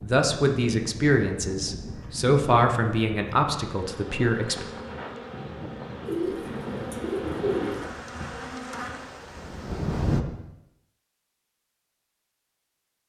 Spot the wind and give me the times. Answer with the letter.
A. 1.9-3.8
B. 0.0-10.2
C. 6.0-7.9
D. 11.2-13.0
B.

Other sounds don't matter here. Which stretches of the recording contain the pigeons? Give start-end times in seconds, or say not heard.
6.0-7.9.